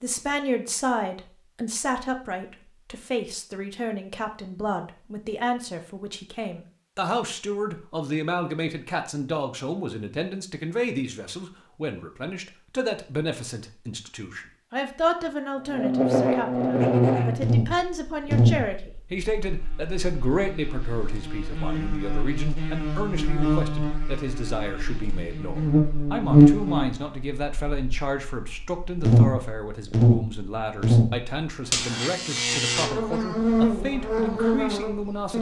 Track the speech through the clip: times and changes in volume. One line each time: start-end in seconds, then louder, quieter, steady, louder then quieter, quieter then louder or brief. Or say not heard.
0.0-35.3 steady.